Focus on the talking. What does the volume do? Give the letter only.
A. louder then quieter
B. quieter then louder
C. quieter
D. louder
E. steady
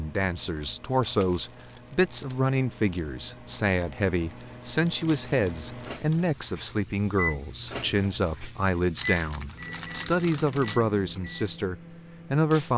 E.